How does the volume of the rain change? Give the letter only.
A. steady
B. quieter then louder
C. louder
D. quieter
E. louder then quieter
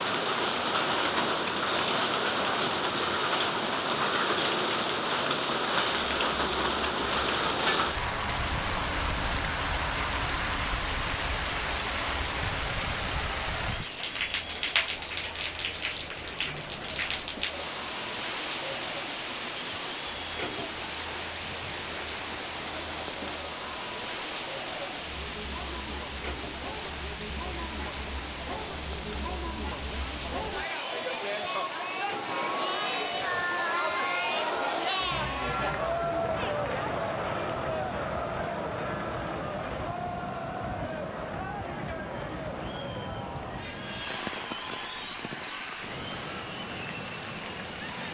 D.